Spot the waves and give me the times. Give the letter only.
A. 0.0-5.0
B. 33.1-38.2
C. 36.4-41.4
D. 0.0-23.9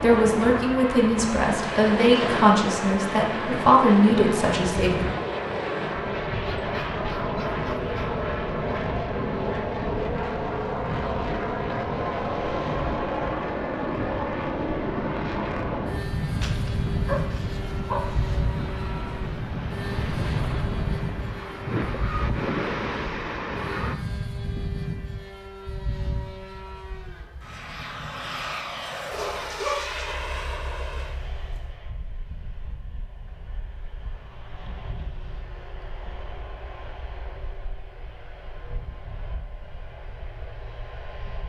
D.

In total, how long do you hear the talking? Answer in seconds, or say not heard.
5 s.